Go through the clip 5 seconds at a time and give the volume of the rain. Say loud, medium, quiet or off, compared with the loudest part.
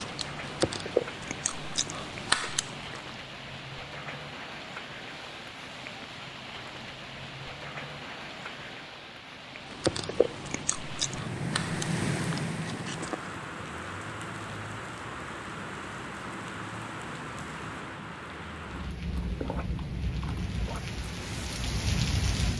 medium, medium, loud, medium, loud.